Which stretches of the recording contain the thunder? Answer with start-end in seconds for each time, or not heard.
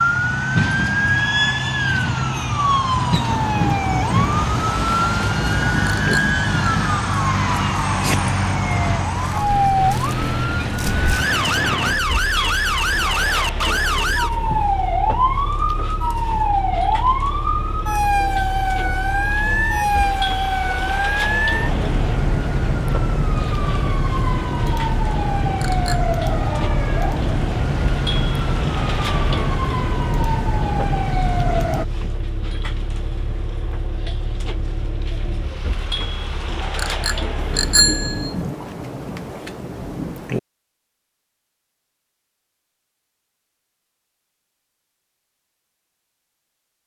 3.1-6.2, 37.4-40.4.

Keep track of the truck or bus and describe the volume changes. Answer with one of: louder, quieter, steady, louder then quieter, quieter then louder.
quieter.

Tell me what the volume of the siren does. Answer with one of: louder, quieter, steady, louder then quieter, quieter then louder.
steady.